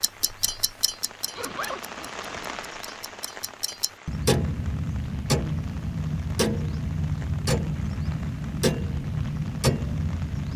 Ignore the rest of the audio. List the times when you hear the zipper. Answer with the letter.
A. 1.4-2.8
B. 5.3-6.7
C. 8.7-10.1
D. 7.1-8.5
A.